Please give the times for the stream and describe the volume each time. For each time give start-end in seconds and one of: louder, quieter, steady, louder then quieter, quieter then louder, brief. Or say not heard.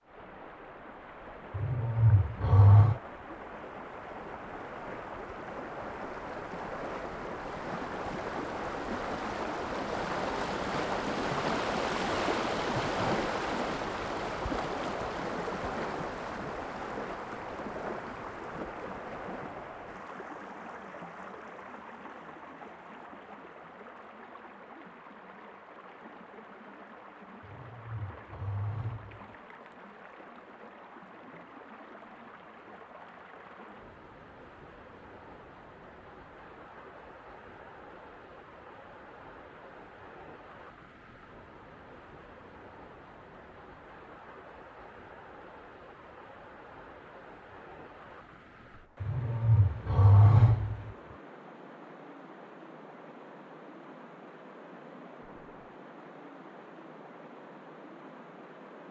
0.0-58.8 quieter.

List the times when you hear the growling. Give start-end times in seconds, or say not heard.
1.5-3.0, 27.4-29.4, 49.0-50.9.